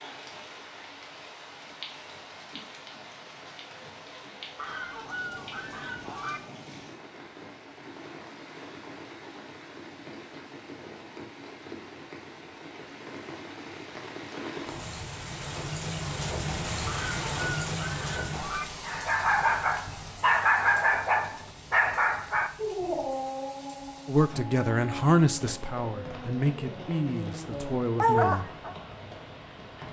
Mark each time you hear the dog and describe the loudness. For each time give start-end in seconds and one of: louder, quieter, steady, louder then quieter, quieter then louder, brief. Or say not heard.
18.9-28.8 quieter then louder.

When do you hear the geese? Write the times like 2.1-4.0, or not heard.
4.5-6.4, 16.9-18.6.